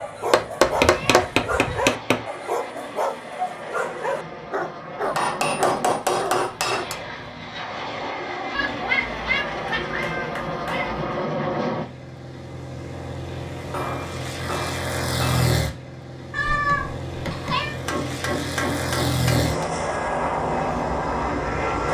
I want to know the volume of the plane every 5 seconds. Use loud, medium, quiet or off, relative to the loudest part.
quiet, medium, medium, loud, loud.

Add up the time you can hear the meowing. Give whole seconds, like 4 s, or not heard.
5 s.